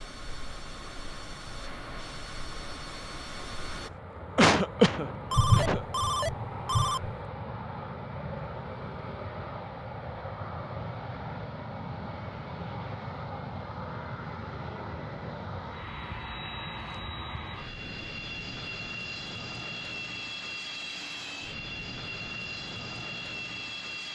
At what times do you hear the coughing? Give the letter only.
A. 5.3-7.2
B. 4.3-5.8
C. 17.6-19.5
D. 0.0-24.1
B.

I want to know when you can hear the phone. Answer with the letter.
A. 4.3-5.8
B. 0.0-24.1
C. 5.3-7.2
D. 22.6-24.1
C.